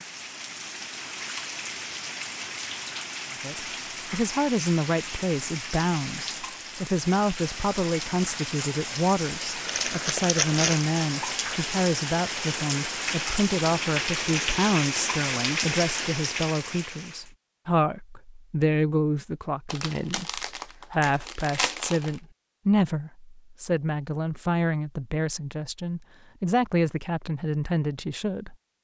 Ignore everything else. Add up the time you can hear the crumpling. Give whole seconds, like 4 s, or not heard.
4 s.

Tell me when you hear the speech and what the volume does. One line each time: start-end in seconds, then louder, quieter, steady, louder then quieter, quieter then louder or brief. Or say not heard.
3.3-28.6 steady.